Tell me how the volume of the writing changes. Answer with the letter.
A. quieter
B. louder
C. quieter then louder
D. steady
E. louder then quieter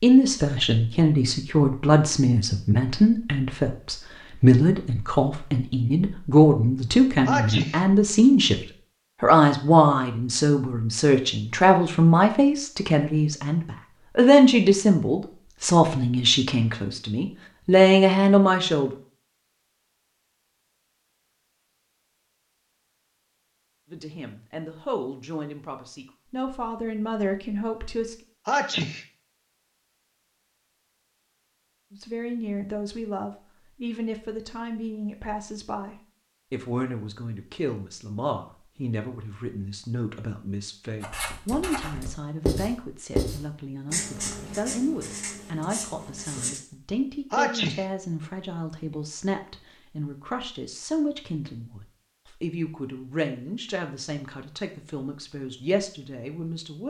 E.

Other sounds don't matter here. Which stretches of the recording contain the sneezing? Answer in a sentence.
You can hear the sneezing from 7.2 to 7.8 s, from 28.4 to 29.1 s and from 47.3 to 47.9 s.